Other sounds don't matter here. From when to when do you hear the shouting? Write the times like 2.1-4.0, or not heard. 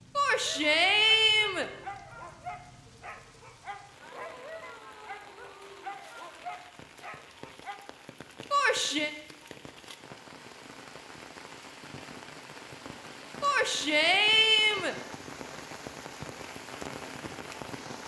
0.1-1.7, 8.5-9.1, 13.4-14.9.